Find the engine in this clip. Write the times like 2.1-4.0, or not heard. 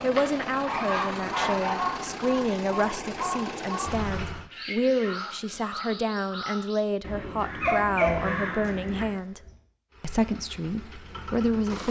0.0-4.5, 9.9-11.8.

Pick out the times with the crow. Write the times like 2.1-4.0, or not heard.
0.8-9.1.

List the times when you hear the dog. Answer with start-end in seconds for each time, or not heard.
0.1-2.0, 7.4-9.5.